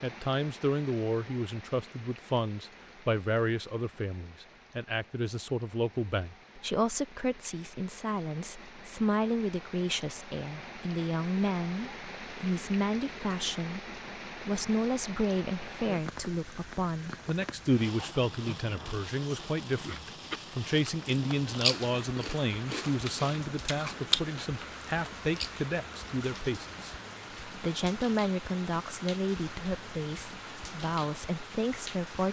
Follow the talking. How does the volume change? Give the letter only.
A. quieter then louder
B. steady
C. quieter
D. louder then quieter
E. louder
B.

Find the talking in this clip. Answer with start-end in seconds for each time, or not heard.
0.0-32.2.